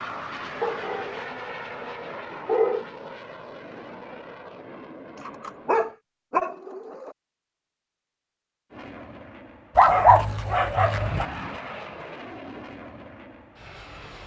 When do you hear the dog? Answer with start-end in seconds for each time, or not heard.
0.6-2.9, 5.2-7.2, 9.8-11.2.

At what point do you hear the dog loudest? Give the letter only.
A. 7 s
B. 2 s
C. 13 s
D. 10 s
D.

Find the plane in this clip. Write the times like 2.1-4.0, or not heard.
0.0-6.0, 8.7-14.2.